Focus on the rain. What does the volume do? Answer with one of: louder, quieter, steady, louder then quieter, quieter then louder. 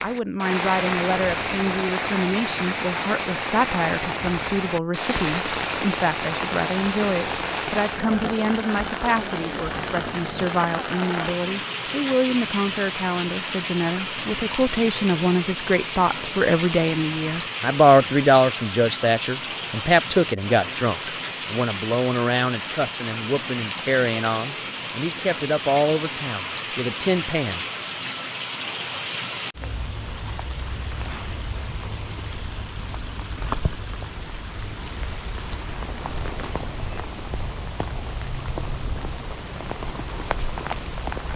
quieter.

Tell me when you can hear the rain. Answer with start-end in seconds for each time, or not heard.
0.0-41.3.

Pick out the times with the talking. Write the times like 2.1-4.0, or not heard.
0.0-27.6.